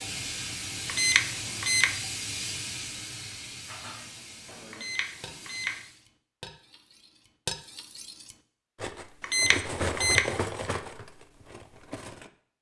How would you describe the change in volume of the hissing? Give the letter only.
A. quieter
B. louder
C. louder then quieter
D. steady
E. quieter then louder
A.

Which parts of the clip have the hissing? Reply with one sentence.
The hissing can be heard from 0.0 to 6.0 s.